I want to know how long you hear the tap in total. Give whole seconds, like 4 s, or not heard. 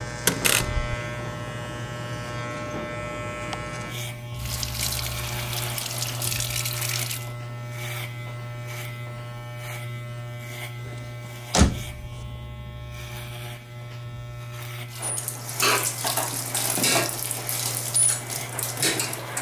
7 s.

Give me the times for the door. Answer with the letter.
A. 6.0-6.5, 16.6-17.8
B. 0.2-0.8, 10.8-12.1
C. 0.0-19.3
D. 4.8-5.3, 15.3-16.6
B.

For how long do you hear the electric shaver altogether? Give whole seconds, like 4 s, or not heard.
19 s.